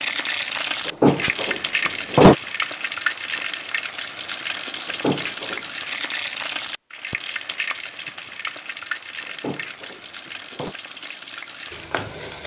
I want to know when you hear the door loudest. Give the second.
2 s.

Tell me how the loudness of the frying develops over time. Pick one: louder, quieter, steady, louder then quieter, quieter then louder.
quieter.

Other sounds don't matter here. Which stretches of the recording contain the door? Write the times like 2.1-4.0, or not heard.
0.8-2.4, 4.8-5.6, 9.2-10.8.